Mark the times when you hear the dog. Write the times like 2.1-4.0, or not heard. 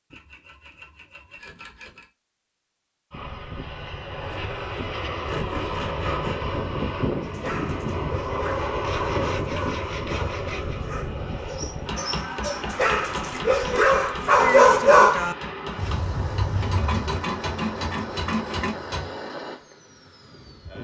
7.2-17.2.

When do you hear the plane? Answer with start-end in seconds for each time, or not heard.
3.1-20.7.